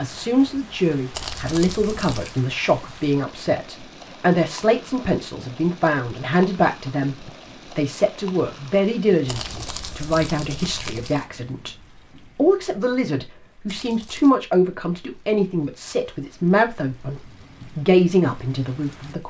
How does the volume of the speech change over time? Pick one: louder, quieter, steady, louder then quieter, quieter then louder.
steady.